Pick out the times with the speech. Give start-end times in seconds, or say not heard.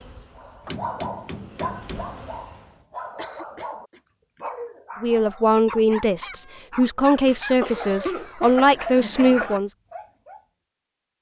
5.0-9.8.